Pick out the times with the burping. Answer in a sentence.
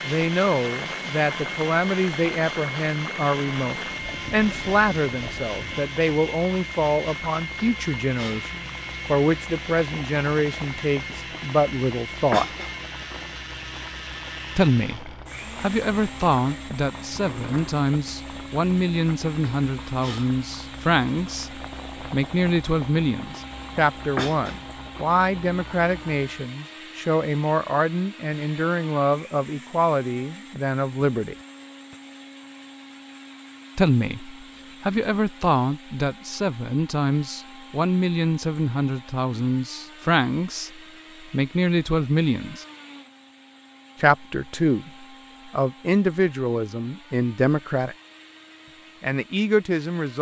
You can't hear the burping here.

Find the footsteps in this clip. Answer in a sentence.
The footsteps can't be heard in this clip.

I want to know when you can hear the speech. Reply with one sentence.
The speech can be heard from 0.0 to 12.4 s, from 14.6 to 31.4 s, from 33.8 to 42.6 s, from 44.0 to 48.0 s and from 49.0 to 50.1 s.